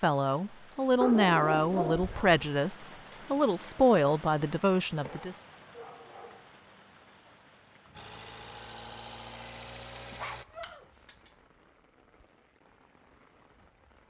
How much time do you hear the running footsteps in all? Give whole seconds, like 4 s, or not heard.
not heard.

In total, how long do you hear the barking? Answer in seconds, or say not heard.
4 s.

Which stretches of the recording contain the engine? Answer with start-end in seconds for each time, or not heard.
7.9-10.4.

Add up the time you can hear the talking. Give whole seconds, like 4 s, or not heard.
5 s.